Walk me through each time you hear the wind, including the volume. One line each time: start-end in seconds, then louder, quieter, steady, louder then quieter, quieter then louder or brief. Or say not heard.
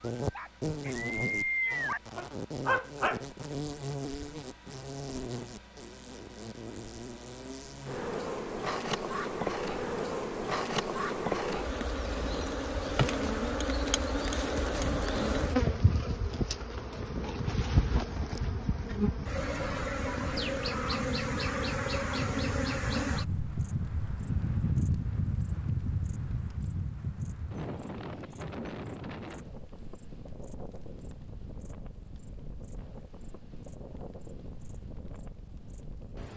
16.9-36.3 louder then quieter.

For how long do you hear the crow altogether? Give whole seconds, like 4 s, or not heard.
not heard.